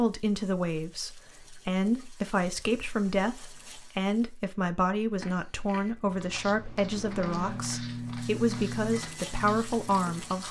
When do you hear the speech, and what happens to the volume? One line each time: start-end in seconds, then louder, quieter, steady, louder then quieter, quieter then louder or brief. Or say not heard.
0.0-10.4 steady.